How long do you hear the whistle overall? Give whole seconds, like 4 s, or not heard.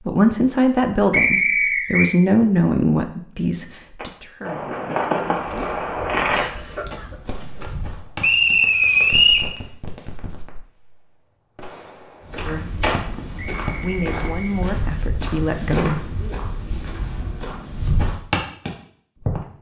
4 s.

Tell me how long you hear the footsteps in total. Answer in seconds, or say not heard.
11 s.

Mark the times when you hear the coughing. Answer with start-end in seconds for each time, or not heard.
6.1-7.7.